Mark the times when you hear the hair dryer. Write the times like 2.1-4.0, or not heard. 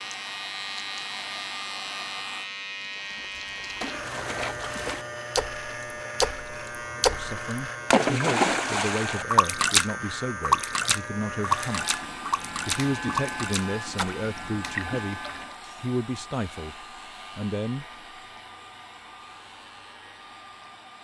0.0-2.5, 11.4-20.9.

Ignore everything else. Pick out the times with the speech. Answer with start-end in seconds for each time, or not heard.
7.0-12.0, 12.7-17.9.